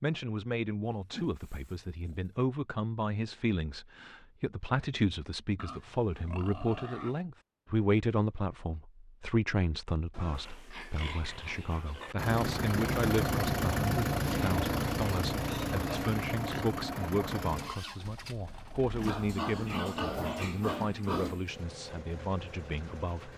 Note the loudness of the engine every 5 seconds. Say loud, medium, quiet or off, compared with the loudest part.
off, off, loud, medium, quiet.